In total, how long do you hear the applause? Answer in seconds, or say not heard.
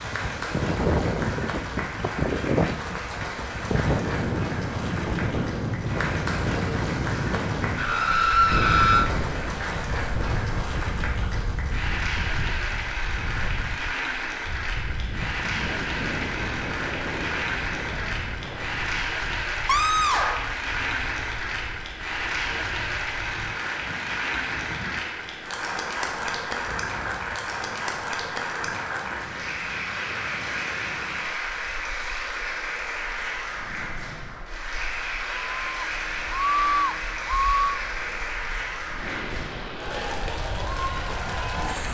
42 s.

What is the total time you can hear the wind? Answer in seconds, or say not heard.
42 s.